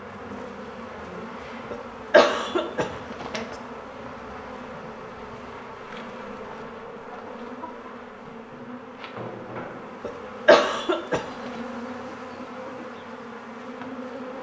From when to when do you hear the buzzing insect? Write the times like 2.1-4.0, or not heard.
0.0-14.3.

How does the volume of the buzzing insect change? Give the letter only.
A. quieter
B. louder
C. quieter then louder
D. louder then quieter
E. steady
E.